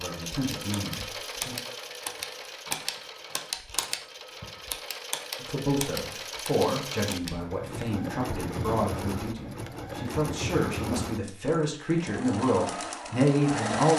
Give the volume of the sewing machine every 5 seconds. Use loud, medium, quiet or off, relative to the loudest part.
medium, loud, loud.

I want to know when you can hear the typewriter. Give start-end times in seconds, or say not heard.
0.5-7.3.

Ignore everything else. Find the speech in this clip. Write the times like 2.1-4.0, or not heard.
0.0-1.6, 5.4-13.9.